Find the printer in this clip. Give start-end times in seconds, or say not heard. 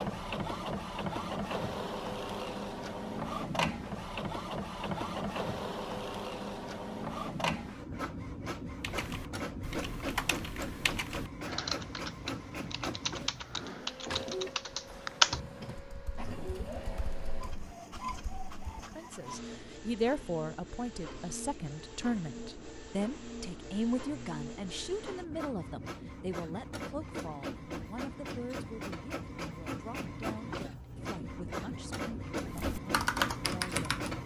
0.0-34.2.